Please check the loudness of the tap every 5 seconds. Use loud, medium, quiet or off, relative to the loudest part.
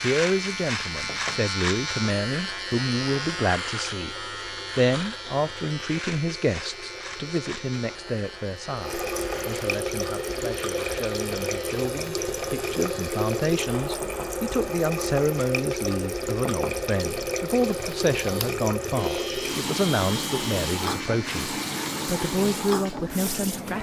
quiet, medium, loud, loud, loud.